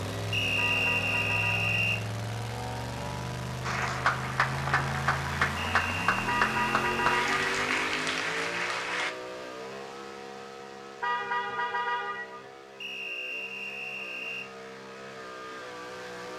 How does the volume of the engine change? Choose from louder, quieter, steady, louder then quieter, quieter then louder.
quieter.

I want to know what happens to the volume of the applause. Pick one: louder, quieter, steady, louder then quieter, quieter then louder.
steady.